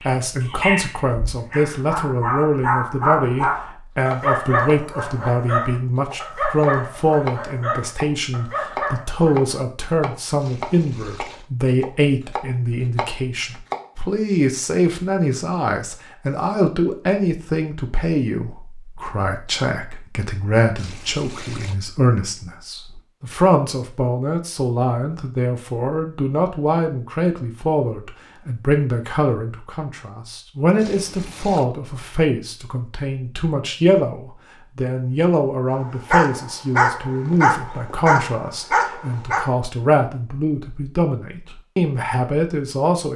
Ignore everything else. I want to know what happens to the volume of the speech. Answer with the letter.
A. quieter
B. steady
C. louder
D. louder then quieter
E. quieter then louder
B.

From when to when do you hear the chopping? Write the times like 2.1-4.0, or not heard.
3.4-13.9.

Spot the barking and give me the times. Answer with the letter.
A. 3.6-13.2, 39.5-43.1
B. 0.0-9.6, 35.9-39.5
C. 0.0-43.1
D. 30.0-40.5
B.